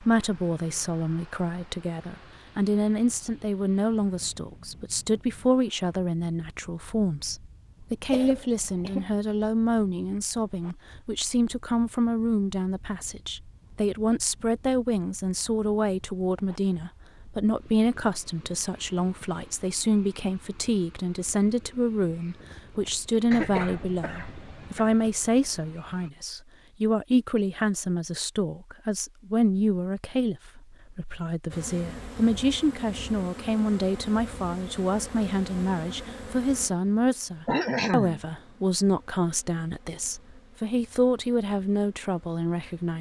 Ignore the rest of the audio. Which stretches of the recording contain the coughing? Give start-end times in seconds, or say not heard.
8.1-9.1, 23.3-24.9, 37.5-38.2.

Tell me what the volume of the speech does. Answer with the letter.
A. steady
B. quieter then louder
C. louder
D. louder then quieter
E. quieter
A.